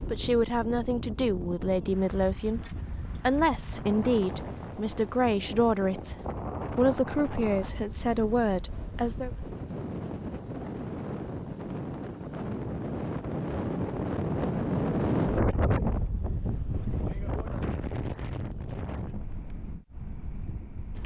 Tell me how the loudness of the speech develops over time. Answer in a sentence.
The loudness of the speech stays about the same.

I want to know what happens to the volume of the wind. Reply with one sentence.
The volume of the wind goes up, then down.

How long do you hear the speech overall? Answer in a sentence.
The speech can be heard for 9 seconds in total.